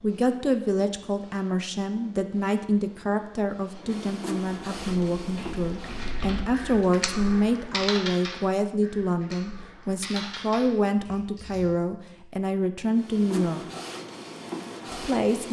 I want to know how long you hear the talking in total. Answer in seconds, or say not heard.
14 s.